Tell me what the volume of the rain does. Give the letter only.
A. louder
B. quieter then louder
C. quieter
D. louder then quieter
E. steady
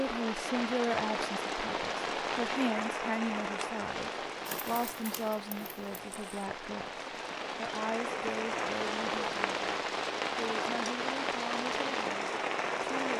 B.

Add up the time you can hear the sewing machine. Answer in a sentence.
The sewing machine can be heard for 2 seconds in total.